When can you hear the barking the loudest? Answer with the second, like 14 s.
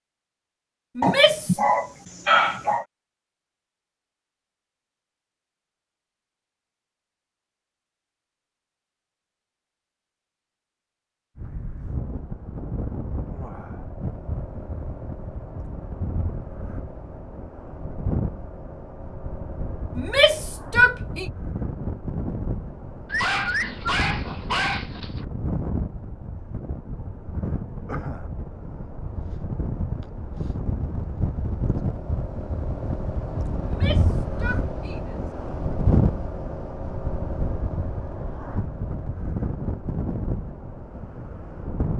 2 s.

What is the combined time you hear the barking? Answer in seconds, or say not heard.
4 s.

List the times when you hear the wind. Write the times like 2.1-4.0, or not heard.
11.3-41.9.